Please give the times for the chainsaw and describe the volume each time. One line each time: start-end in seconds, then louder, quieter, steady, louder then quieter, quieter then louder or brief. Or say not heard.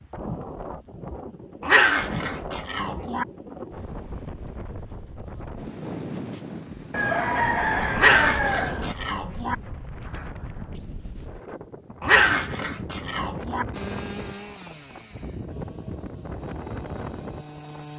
13.7-17.9 quieter then louder.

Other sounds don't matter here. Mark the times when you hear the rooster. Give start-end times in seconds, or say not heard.
6.9-8.9.